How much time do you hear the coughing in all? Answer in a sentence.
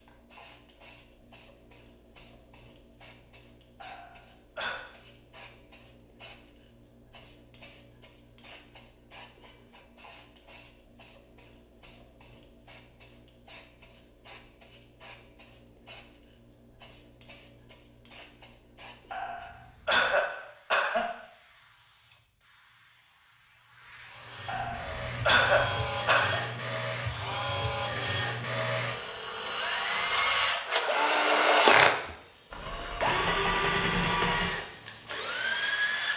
The coughing can be heard for 5 seconds in total.